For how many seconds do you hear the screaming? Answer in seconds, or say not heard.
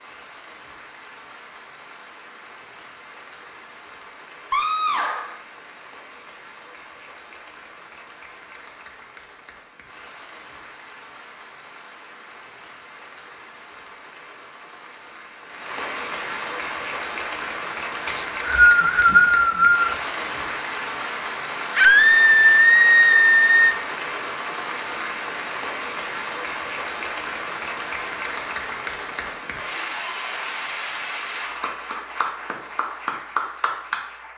3 s.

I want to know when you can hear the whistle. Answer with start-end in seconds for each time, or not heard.
18.1-19.9.